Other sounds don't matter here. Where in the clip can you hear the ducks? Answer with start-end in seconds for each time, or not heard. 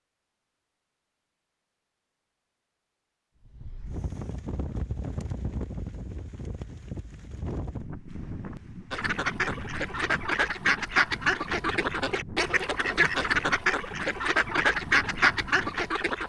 8.9-16.2.